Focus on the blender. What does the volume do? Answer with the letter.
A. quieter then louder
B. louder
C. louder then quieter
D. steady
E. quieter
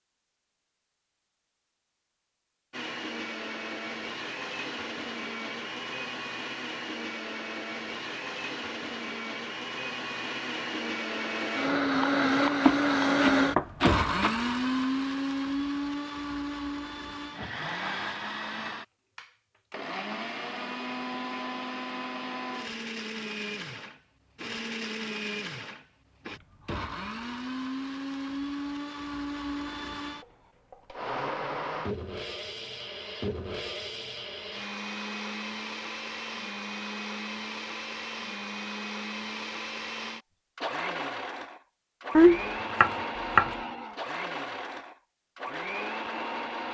C.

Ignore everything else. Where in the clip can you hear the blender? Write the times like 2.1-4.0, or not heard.
2.7-46.6.